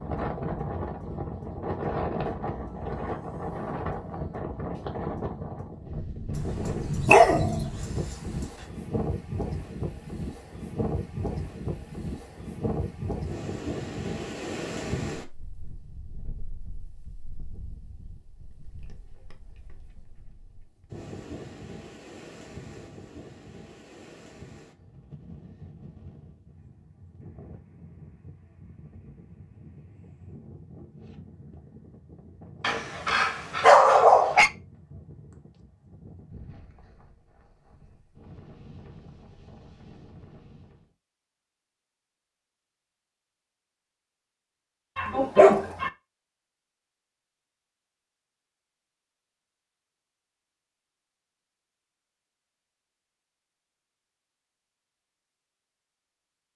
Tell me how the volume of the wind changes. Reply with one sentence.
The loudness of the wind goes down.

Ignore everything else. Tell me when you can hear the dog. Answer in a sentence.
The dog can be heard from 6.3 to 8.4 s, from 32.6 to 34.5 s and from 45.0 to 45.9 s.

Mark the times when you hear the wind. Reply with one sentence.
You can hear the wind from 0.0 to 40.9 s.